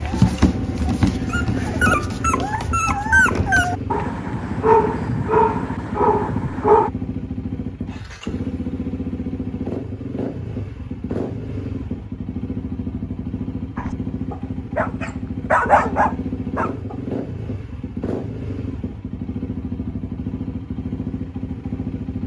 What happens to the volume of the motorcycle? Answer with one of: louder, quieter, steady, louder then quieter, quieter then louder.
steady.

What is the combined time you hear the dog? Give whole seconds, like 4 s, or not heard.
10 s.